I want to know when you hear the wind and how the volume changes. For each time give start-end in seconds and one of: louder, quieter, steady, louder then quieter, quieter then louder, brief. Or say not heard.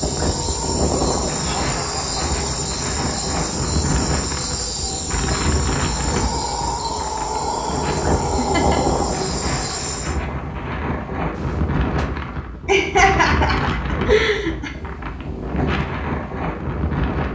0.0-17.3 steady.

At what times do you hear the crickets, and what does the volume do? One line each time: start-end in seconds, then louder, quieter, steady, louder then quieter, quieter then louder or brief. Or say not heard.
0.0-10.2 steady.